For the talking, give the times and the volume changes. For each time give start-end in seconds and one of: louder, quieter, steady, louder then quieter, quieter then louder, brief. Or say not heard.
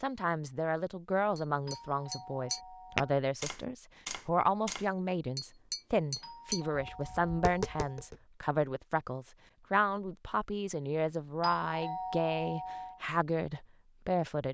0.0-14.4 steady.